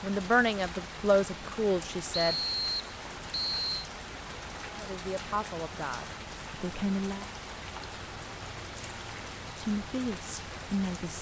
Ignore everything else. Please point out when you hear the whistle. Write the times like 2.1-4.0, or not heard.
2.1-3.9.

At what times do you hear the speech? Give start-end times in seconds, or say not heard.
0.0-2.4, 4.7-7.2, 9.4-11.1.